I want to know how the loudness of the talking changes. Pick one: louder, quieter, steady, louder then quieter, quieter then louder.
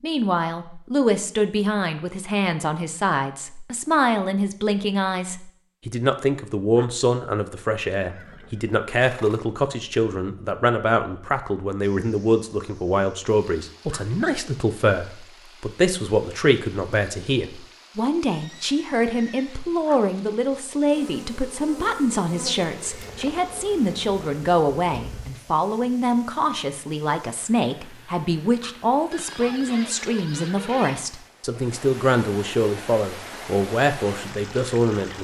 steady.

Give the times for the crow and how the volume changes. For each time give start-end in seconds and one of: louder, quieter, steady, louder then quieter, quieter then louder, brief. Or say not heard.
not heard.